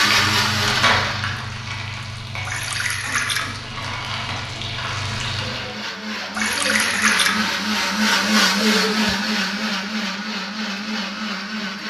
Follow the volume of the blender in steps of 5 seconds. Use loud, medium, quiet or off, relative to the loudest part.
loud, loud, medium.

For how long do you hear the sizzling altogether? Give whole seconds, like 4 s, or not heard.
6 s.